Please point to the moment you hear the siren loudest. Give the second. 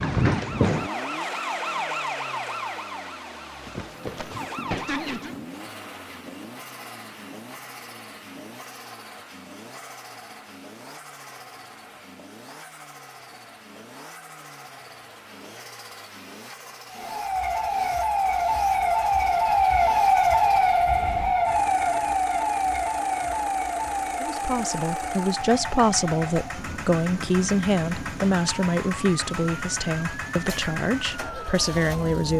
20 s.